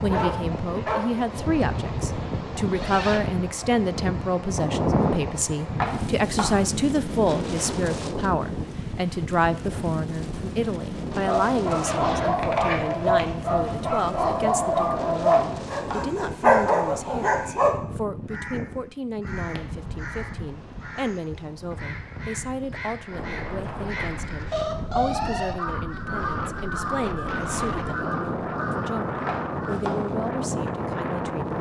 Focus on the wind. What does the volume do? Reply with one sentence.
The loudness of the wind goes down, then up.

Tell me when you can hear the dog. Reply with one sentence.
The dog can be heard from 0.0 to 1.6 s and from 11.2 to 17.8 s.